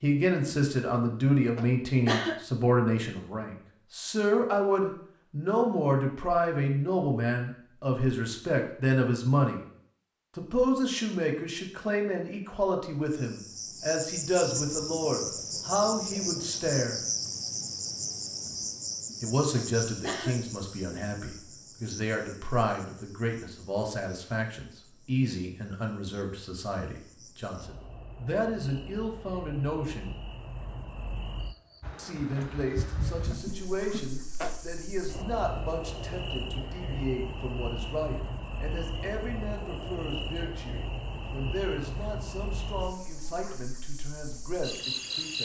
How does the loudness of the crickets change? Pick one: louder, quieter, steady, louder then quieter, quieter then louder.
quieter then louder.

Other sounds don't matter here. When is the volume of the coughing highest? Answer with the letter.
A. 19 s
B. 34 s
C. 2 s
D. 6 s
C.